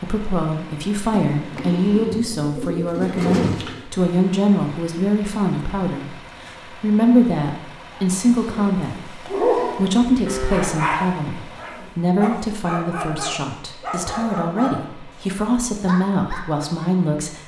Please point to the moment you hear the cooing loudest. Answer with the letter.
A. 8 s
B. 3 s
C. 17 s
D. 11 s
B.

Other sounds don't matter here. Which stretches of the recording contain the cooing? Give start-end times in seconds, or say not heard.
1.4-3.9.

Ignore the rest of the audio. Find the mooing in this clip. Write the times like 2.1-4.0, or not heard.
10.2-10.9.